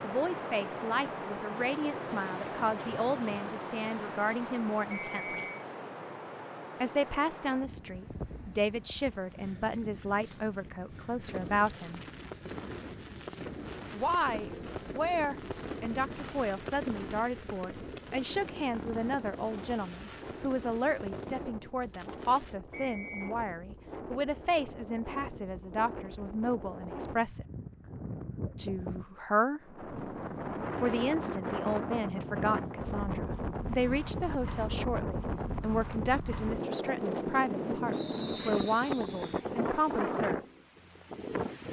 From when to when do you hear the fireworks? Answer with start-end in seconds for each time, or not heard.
11.2-22.6.